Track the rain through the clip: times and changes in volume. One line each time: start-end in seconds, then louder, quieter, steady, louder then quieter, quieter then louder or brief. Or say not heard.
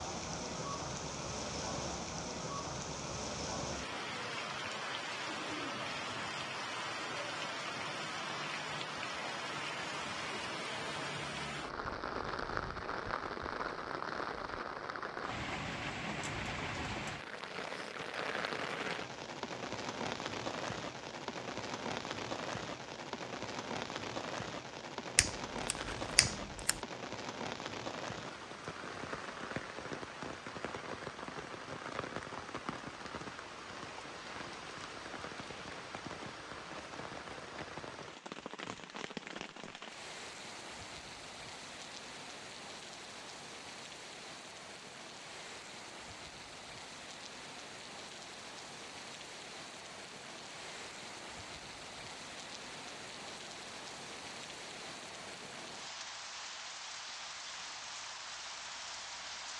0.0-59.5 quieter.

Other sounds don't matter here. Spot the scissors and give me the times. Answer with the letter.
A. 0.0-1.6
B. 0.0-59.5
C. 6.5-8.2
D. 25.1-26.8
D.